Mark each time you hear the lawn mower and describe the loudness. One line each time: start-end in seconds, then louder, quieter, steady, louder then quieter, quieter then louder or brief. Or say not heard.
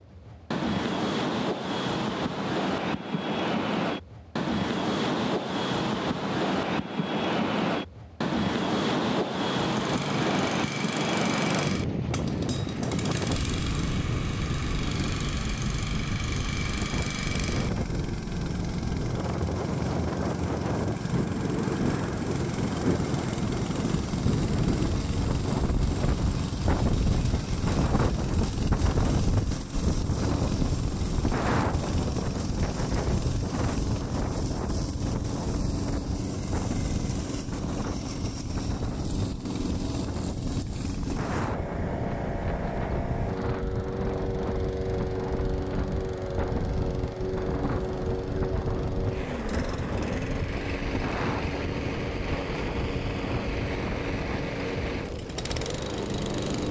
9.7-56.6 steady.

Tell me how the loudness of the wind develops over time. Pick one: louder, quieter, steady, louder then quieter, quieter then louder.
quieter.